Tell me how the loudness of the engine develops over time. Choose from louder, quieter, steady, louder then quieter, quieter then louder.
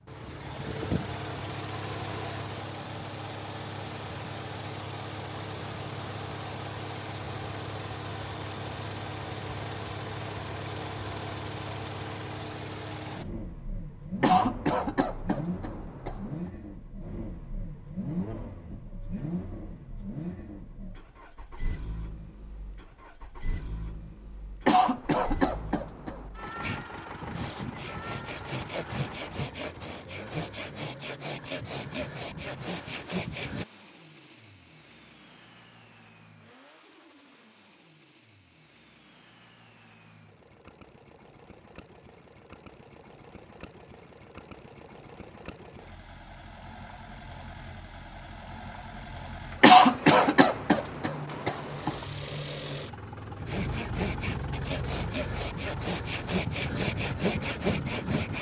quieter then louder.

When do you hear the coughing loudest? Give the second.
50 s.